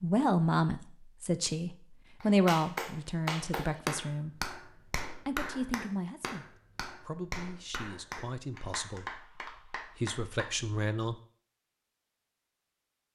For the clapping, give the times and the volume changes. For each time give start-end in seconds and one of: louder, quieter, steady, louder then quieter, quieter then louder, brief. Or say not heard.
2.2-10.5 quieter.